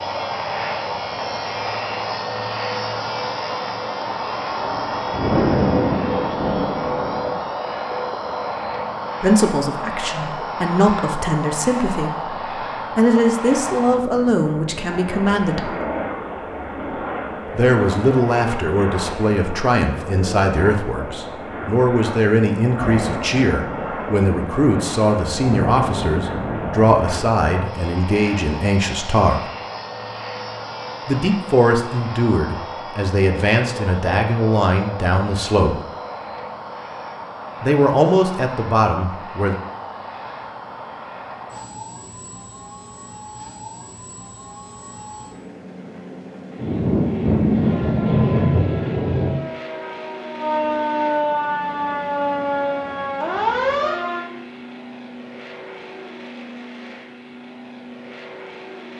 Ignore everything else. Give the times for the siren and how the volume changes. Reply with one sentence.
You can hear the siren from 47.6 to 54.2 s, getting louder.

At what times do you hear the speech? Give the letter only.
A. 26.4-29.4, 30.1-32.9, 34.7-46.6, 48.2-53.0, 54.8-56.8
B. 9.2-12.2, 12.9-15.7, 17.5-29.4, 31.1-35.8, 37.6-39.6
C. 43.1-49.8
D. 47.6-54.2
B.